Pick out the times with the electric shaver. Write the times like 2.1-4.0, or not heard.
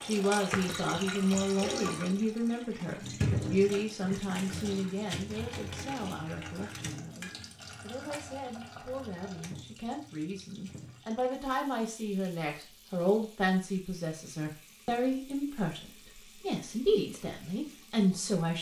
not heard.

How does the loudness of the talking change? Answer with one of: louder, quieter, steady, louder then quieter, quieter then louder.
quieter then louder.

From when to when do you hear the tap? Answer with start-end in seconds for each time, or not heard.
0.0-18.5.